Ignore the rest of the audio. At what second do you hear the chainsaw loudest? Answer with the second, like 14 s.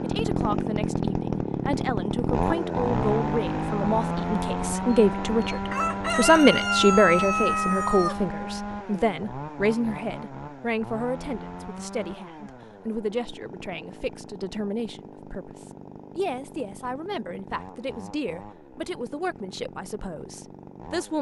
3 s.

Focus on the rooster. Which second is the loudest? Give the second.
7 s.